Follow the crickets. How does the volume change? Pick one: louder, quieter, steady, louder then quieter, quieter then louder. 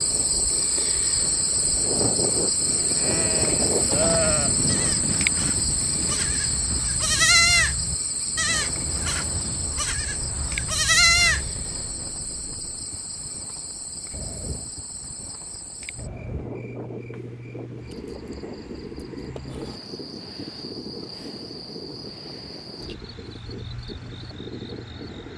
quieter.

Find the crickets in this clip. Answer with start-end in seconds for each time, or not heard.
0.0-25.3.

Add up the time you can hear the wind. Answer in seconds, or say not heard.
25 s.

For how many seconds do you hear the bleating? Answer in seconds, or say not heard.
9 s.